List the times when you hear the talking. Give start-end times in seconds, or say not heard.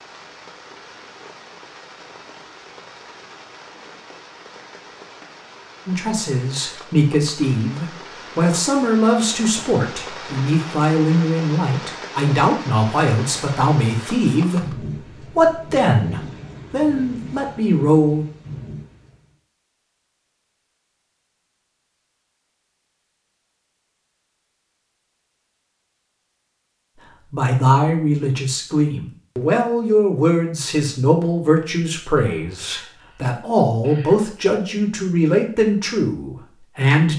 5.8-18.2, 27.3-37.1.